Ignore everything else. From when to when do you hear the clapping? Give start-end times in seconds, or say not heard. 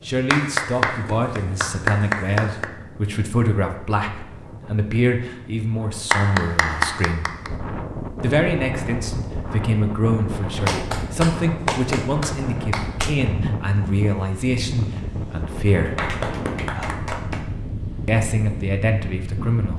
0.3-2.6, 6.1-7.5, 10.6-13.2, 15.8-17.4.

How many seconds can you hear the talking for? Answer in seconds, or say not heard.
17 s.